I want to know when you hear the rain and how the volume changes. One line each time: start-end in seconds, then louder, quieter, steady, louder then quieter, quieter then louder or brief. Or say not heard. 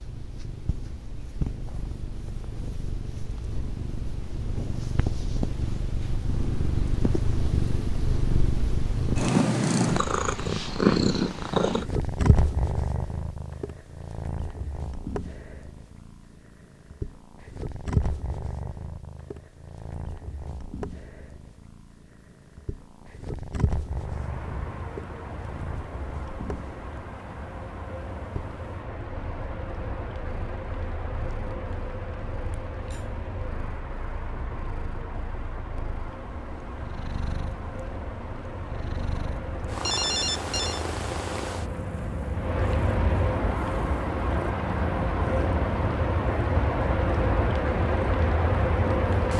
23.9-49.3 louder.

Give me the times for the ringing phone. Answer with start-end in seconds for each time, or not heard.
39.9-40.9.